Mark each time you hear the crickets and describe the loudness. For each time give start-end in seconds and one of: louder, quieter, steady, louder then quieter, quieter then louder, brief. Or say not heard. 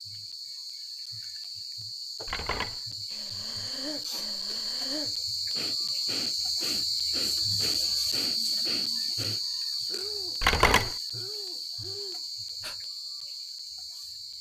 0.0-14.3 louder then quieter.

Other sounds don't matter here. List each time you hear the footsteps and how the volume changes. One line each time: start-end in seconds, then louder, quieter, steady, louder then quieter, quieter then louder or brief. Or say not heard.
not heard.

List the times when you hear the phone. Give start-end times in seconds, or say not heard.
2.2-2.8, 10.4-10.9.